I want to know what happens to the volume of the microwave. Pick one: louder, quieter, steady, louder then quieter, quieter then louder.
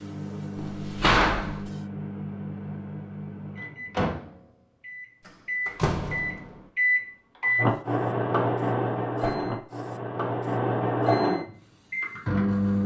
louder.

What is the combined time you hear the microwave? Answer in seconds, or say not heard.
13 s.